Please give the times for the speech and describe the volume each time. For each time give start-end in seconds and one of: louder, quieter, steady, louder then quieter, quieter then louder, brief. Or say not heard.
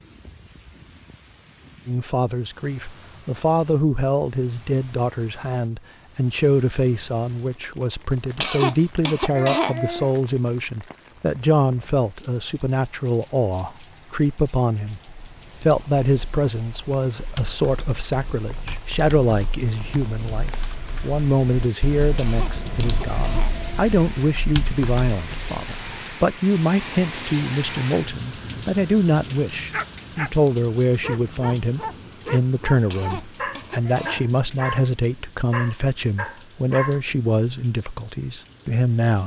1.9-39.2 steady.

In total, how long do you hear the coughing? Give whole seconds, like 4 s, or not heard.
5 s.